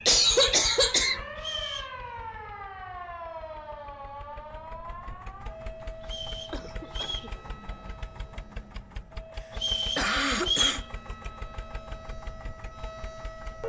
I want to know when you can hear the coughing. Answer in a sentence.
The coughing can be heard from 0.1 to 1.2 s, from 6.5 to 7.3 s and from 9.9 to 10.8 s.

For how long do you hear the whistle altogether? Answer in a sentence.
The whistle can be heard for 3 seconds in total.